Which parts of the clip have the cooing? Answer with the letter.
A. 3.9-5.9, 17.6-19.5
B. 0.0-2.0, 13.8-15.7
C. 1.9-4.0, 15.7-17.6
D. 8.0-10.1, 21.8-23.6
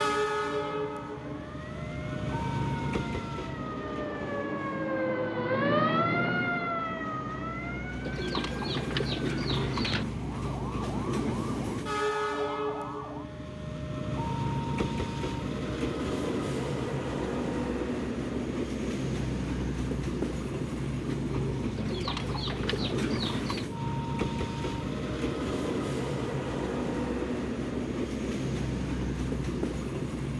D.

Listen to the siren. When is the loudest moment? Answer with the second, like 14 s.
6 s.